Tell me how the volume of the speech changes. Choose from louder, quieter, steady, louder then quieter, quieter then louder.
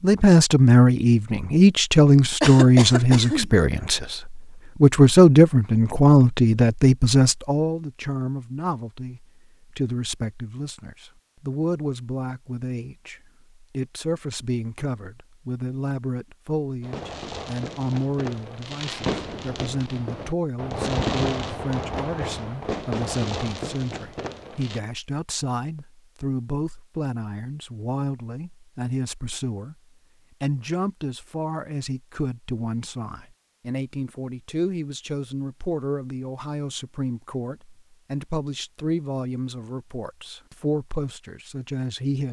quieter.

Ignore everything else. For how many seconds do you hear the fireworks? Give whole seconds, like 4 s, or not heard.
8 s.